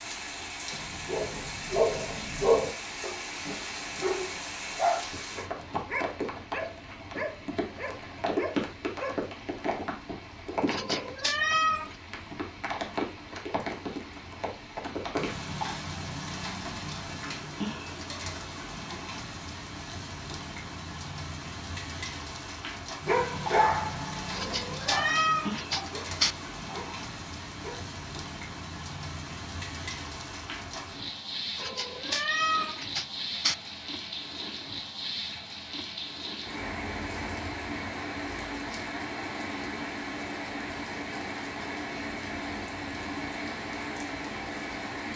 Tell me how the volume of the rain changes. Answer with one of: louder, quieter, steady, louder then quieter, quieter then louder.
steady.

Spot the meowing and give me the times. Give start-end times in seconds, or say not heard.
10.7-11.9, 24.3-26.4, 31.6-33.5.